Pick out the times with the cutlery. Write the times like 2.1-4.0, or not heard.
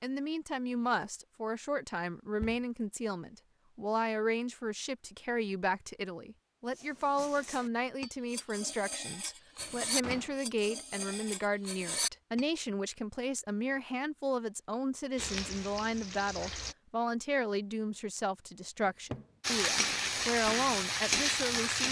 6.8-12.4.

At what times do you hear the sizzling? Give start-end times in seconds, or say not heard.
15.2-16.8, 19.4-21.8.